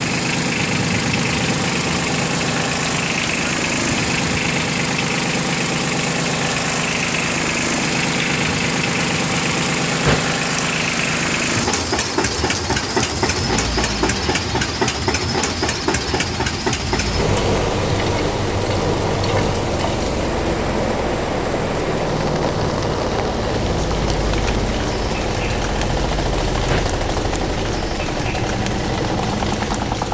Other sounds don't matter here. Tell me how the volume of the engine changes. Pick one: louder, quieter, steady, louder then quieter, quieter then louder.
steady.